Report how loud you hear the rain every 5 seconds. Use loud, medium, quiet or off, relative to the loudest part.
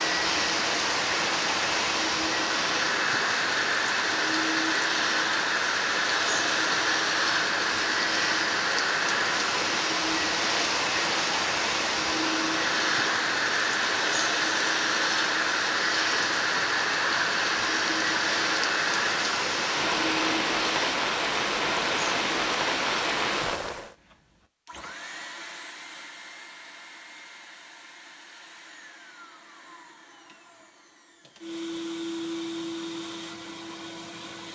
loud, loud, loud, loud, loud, off, off.